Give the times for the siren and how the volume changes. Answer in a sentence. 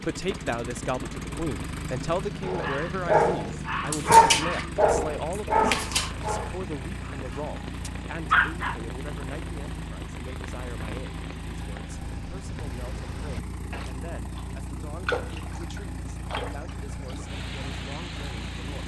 The siren can't be heard in this clip.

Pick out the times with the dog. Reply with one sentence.
You can hear the dog from 2.5 to 8.8 s.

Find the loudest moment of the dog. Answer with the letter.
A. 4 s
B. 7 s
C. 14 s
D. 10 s
A.